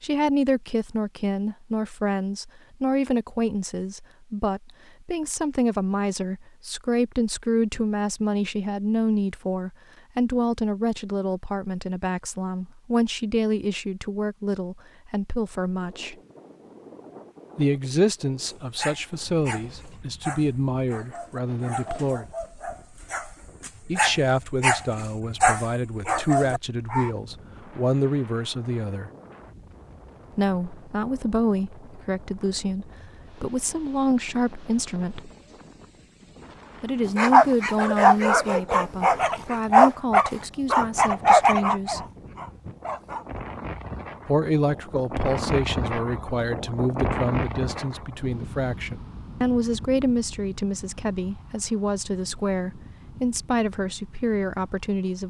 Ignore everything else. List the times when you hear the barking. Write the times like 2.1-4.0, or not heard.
18.4-27.1, 37.1-43.4.